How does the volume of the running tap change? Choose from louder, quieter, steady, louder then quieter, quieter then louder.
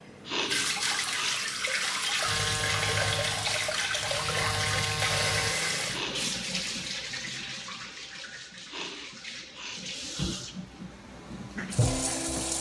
quieter then louder.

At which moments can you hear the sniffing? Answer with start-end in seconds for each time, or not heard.
0.2-1.4, 5.8-6.3, 8.7-9.8.